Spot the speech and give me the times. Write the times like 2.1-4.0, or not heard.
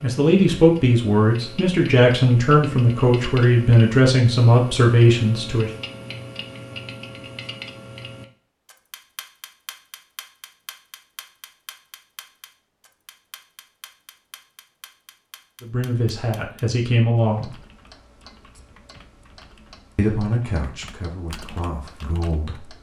0.0-5.7, 15.6-17.6, 19.9-22.7.